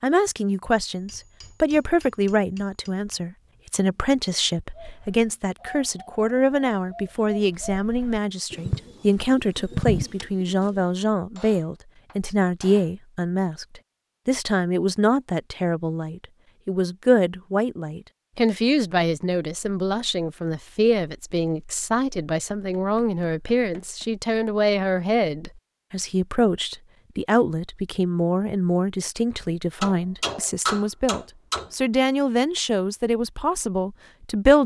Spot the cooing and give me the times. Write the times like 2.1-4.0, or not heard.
4.7-10.8.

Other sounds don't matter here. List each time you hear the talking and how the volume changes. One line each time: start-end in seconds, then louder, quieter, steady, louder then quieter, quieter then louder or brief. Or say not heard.
0.0-34.6 steady.